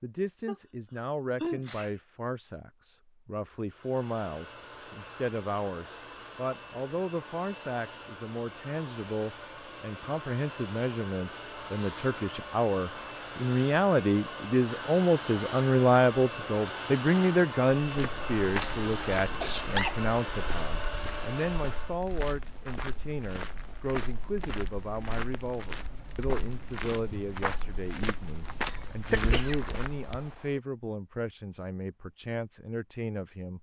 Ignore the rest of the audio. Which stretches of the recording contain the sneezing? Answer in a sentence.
The sneezing can be heard from 0.5 to 1.9 s, from 19.2 to 20.0 s and from 29.1 to 30.2 s.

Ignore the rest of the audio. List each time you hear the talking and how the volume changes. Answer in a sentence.
You can hear the talking from 0.0 to 33.5 s, getting louder then quieter.